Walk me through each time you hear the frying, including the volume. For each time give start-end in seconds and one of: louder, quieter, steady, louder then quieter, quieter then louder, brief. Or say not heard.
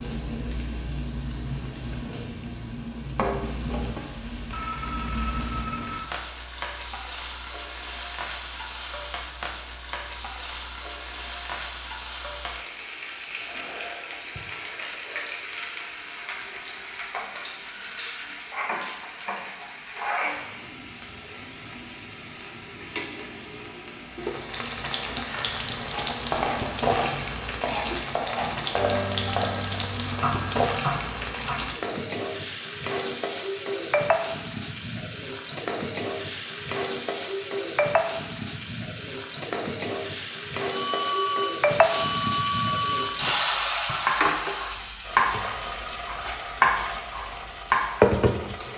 0.0-48.7 louder.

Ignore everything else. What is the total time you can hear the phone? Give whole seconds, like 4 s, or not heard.
6 s.